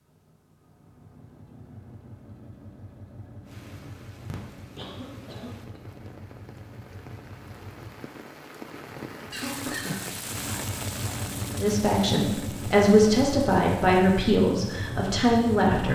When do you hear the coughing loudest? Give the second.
10 s.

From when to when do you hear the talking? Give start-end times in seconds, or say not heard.
11.6-15.9.